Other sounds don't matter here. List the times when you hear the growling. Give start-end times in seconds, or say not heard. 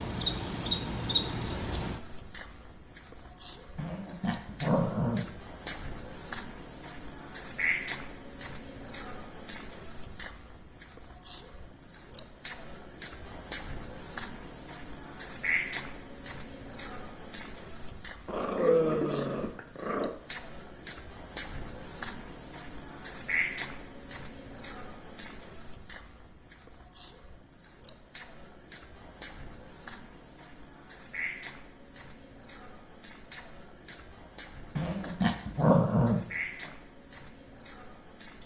3.8-5.8, 18.2-20.1, 34.8-36.7.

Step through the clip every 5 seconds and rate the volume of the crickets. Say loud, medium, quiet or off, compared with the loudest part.
loud, loud, loud, loud, loud, medium, medium, medium.